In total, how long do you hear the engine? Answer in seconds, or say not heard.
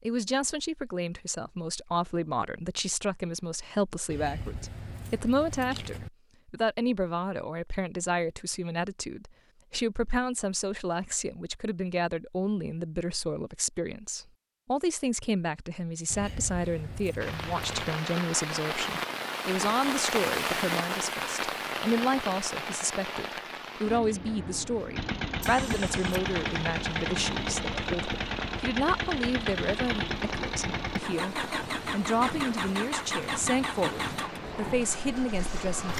11 s.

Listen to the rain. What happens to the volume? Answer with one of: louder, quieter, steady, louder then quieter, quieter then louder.
quieter.